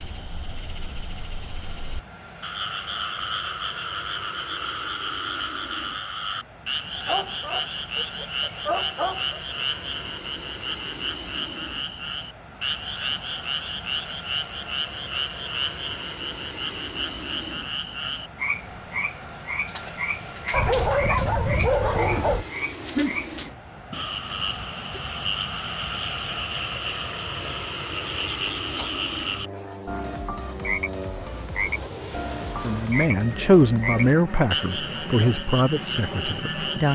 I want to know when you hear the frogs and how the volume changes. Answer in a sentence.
The frogs can be heard from 0.0 to 36.9 s, at a steady volume.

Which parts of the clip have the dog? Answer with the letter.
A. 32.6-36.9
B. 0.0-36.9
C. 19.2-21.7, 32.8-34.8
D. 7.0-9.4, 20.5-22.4
D.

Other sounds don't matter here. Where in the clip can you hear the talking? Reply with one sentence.
The talking can be heard from 32.6 to 36.9 s.